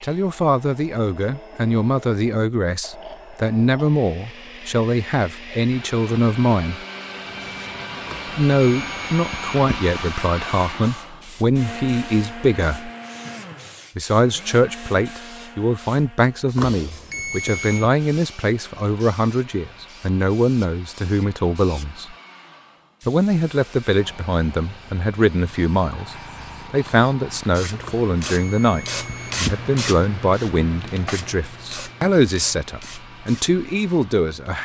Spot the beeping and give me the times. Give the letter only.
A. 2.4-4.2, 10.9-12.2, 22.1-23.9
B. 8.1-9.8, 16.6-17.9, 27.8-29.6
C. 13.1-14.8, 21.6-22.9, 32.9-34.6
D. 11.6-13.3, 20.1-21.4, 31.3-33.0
B.